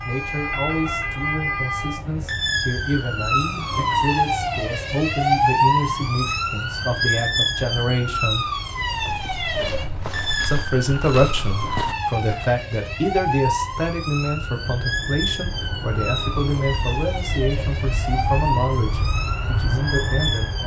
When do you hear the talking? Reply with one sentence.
The talking can be heard from 0.1 to 8.5 s and from 10.4 to 20.6 s.